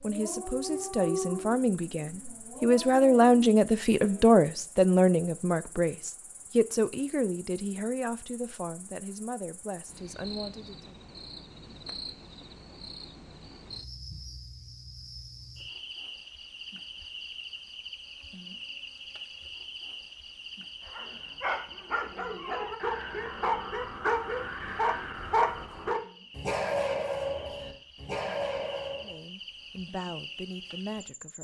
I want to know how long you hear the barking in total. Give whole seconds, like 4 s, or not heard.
13 s.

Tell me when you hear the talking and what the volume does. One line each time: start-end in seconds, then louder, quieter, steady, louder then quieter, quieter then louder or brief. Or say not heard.
0.0-10.9 louder then quieter
29.0-31.4 brief.